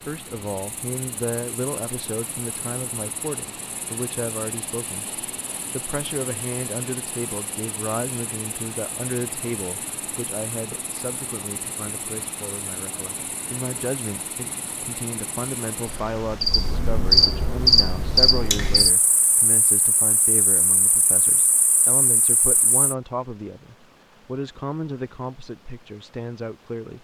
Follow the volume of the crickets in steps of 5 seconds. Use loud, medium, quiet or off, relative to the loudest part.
quiet, quiet, quiet, loud, quiet, off.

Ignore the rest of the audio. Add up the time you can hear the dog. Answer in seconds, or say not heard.
not heard.